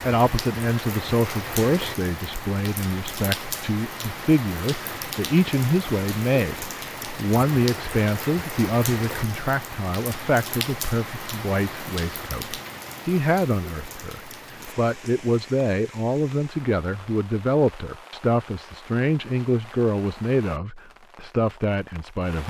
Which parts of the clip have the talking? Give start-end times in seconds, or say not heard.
0.0-22.4.